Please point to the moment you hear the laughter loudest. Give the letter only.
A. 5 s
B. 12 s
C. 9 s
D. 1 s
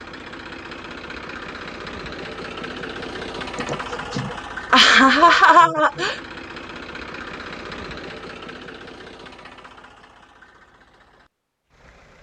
A.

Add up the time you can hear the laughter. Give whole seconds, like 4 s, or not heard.
3 s.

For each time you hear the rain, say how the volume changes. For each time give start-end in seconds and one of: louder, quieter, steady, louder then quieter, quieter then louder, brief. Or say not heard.
not heard.